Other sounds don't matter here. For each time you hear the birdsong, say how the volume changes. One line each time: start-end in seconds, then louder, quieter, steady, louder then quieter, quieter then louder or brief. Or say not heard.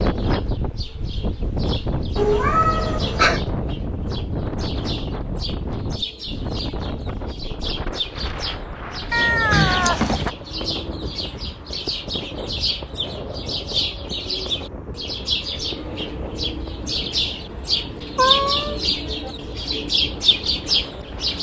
0.0-21.3 louder.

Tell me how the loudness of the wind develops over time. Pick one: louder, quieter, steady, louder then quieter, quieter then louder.
quieter.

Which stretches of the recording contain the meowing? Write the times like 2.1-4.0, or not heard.
2.1-3.4, 9.1-10.3, 18.1-19.3.